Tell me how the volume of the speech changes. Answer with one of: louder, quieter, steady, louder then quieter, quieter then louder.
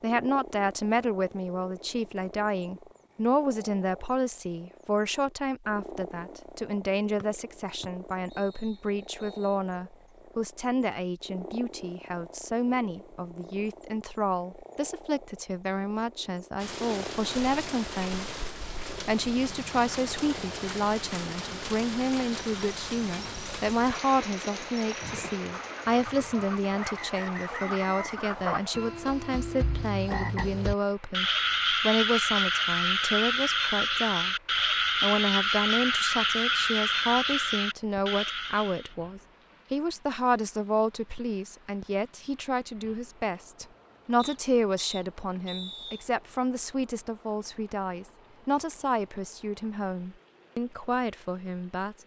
steady.